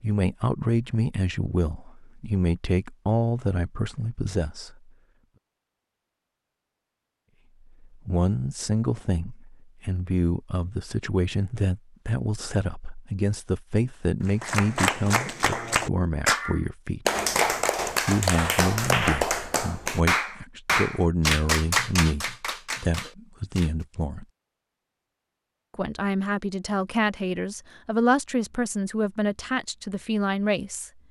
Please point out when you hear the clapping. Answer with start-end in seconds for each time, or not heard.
14.2-23.7.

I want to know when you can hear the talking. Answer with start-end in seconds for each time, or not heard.
0.0-4.9, 7.8-17.1, 18.1-24.2, 25.8-31.0.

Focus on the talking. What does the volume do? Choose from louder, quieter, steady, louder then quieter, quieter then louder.
steady.